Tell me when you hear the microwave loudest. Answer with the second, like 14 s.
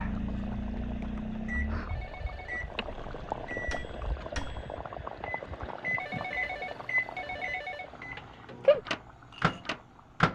9 s.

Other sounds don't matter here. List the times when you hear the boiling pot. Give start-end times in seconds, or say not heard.
0.0-10.3.